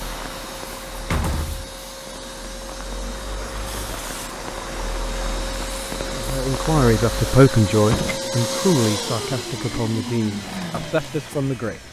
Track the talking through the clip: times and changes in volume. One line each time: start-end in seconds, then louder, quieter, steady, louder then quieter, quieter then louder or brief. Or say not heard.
6.1-11.8 quieter.